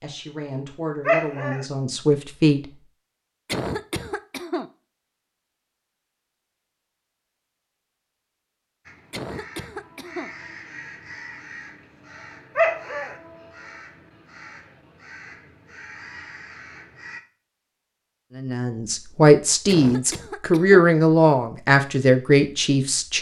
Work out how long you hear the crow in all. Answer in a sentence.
You can hear the crow for 8 seconds altogether.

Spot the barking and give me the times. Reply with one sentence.
The barking can be heard from 1.1 to 1.6 s and from 12.6 to 13.2 s.